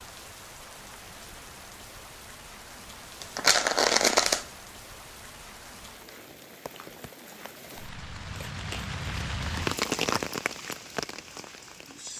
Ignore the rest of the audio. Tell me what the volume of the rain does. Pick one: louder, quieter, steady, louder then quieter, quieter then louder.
louder.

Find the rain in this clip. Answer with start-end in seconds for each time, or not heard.
0.0-12.1.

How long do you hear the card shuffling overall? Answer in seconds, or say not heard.
3 s.